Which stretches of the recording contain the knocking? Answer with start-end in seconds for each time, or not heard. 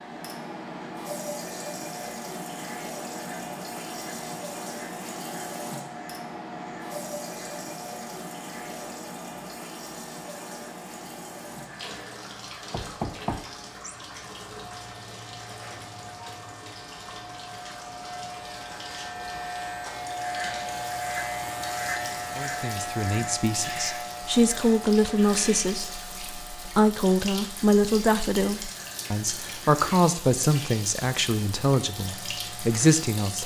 12.7-13.9.